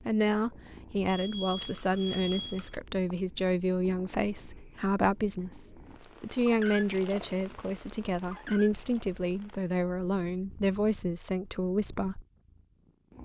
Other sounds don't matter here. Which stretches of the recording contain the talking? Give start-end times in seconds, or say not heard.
0.1-12.2.